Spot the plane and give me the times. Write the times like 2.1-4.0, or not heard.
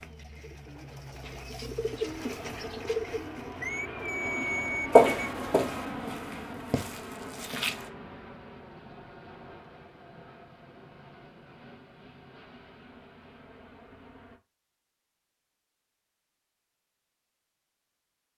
0.0-14.4.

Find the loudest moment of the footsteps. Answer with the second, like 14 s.
5 s.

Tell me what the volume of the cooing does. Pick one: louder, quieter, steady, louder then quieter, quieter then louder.
louder.